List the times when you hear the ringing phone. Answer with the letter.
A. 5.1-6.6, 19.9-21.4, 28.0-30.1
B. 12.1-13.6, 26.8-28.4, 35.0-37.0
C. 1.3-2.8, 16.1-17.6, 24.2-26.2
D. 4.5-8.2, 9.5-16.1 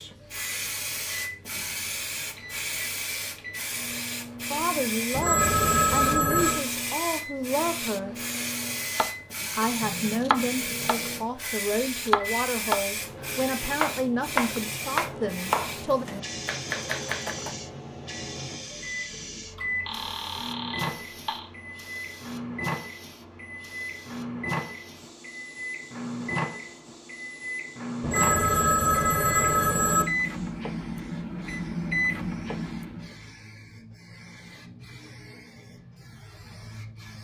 A.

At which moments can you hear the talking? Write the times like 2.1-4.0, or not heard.
4.5-8.2, 9.5-16.1.